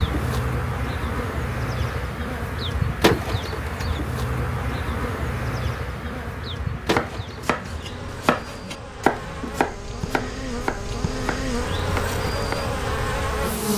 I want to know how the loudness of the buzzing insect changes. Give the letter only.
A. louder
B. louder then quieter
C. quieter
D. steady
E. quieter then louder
E.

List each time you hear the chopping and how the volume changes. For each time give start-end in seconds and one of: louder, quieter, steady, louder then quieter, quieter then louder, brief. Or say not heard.
6.8-12.6 louder then quieter.